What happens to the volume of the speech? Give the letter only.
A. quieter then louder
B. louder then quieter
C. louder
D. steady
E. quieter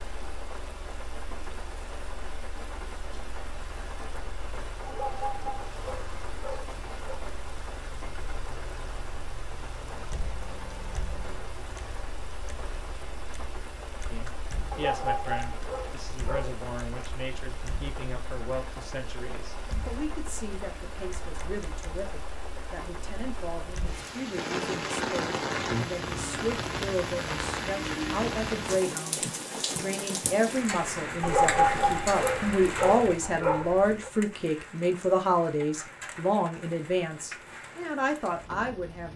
C.